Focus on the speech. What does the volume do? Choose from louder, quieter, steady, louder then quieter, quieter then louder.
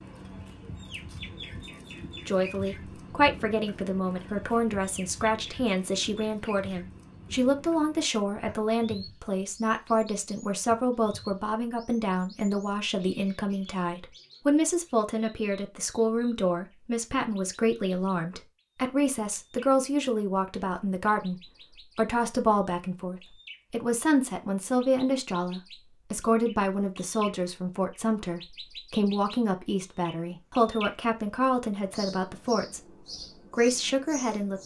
steady.